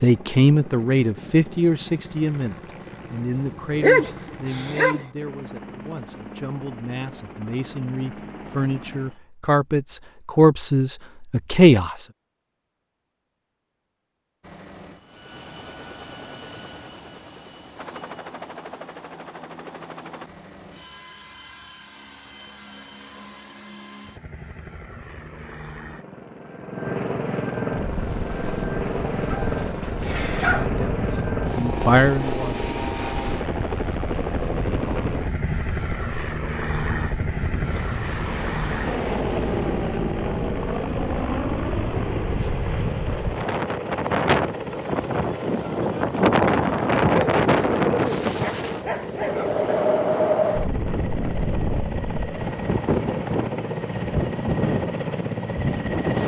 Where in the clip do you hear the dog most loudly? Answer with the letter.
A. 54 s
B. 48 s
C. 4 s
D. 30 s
C.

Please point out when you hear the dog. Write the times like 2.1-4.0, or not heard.
3.8-5.0, 29.0-30.7, 47.1-49.6.